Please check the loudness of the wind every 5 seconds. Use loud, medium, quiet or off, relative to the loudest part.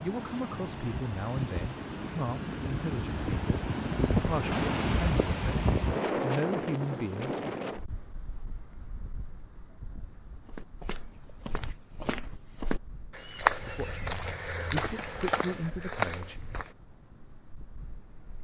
loud, loud, quiet, quiet.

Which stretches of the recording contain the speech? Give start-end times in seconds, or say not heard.
0.0-7.6, 13.7-16.4.